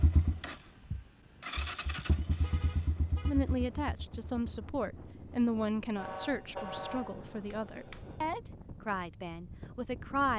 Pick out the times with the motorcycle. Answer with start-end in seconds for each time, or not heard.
0.0-5.8.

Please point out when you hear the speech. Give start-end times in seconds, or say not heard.
3.2-10.3.